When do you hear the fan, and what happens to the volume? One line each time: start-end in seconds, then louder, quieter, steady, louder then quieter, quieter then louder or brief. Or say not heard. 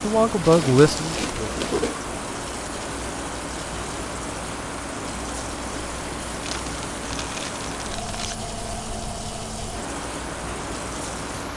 0.0-11.5 steady.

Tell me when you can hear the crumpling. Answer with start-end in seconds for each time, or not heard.
0.4-2.0, 6.4-8.4.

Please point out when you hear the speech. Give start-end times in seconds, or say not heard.
0.0-1.5.